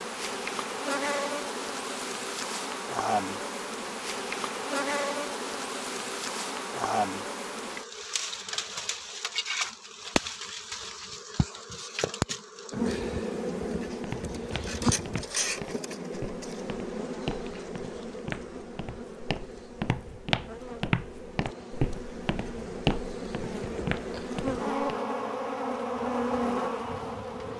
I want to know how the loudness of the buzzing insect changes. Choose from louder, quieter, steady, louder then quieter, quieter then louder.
quieter then louder.